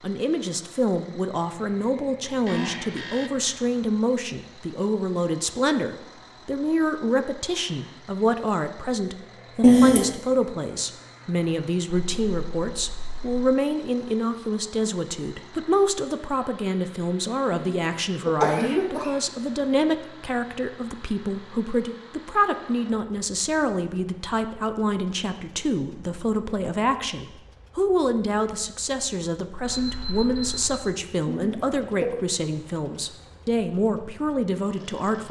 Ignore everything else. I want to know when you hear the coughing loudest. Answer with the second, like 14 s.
10 s.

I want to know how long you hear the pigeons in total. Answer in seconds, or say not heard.
not heard.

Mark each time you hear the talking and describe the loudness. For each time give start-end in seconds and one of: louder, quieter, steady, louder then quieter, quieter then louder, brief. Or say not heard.
0.0-35.2 steady.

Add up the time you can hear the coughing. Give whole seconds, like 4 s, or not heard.
3 s.